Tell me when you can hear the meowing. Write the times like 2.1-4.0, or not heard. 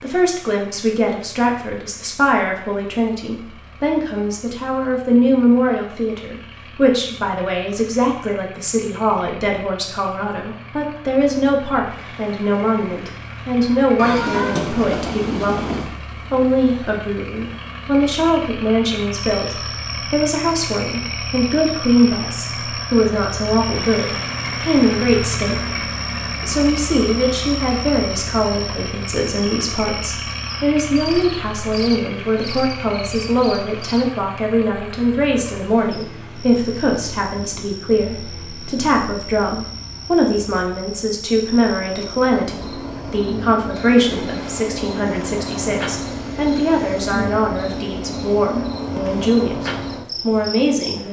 13.9-15.9.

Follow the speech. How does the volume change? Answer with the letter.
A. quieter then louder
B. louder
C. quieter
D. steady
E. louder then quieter
D.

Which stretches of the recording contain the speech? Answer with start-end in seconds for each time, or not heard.
0.0-51.0.